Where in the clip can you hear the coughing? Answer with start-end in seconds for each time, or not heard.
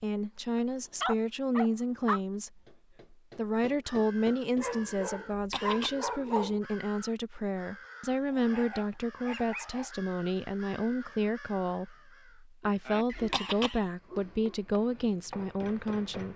5.3-6.0, 13.1-13.9.